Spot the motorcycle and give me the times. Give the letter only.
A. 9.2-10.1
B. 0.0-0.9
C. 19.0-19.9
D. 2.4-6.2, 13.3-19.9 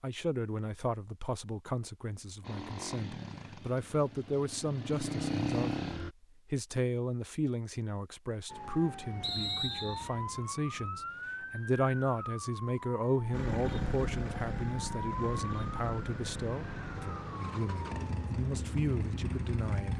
D.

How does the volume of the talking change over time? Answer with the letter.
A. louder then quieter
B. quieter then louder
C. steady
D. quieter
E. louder
C.